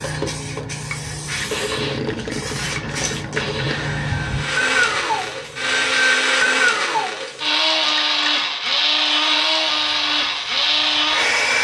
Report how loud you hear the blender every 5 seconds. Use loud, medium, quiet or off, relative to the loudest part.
medium, loud, loud.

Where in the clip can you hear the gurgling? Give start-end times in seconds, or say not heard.
1.8-3.9.